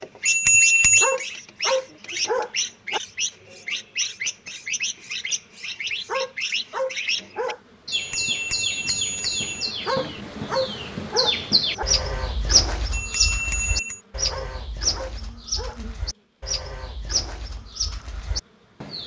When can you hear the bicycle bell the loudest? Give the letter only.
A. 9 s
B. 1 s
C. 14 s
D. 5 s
B.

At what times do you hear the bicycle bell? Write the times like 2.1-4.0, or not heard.
0.2-1.1, 7.9-9.8, 12.9-14.0.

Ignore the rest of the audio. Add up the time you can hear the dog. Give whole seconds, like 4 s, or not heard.
7 s.